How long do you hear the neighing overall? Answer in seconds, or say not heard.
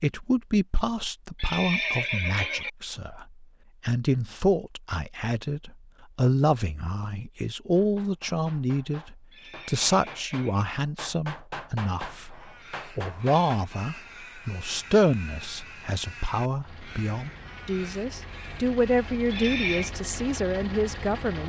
3 s.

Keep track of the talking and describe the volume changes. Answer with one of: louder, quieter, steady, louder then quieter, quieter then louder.
steady.